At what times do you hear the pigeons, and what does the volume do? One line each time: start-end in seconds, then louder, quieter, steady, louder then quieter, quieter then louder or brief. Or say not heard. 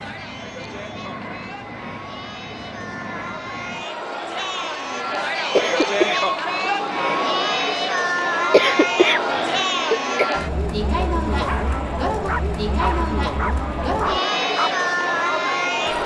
not heard.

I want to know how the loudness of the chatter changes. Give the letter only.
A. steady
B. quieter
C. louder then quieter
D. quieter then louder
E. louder
E.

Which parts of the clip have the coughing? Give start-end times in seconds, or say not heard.
5.5-6.2, 8.5-10.2.